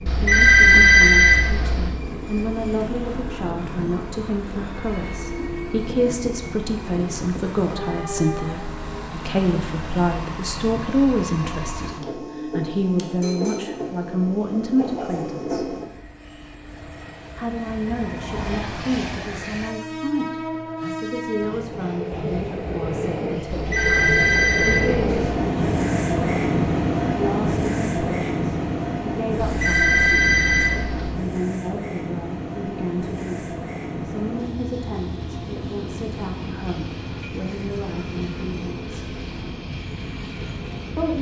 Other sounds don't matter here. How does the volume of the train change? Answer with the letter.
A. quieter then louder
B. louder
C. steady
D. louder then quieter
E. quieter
D.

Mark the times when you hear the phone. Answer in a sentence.
The phone can be heard from 0.1 to 2.0 s, from 23.5 to 25.2 s and from 29.4 to 31.1 s.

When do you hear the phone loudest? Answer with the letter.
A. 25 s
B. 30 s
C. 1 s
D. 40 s
C.